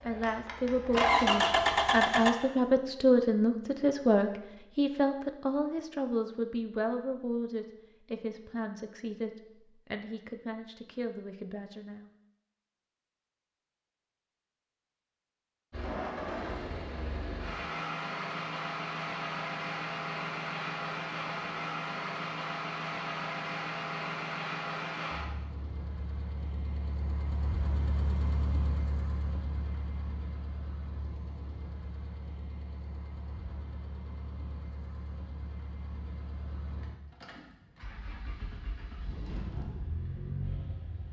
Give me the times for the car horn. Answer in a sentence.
You can't hear the car horn here.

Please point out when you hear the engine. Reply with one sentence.
You can hear the engine from 0.0 to 2.3 s and from 15.7 to 41.0 s.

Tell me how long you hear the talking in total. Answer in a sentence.
You can hear the talking for 12 seconds altogether.